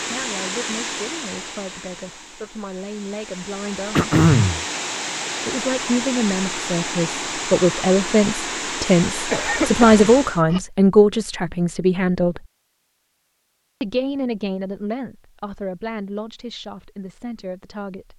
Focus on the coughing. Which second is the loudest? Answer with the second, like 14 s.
4 s.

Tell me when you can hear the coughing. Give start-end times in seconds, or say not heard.
4.0-4.7, 9.3-10.6.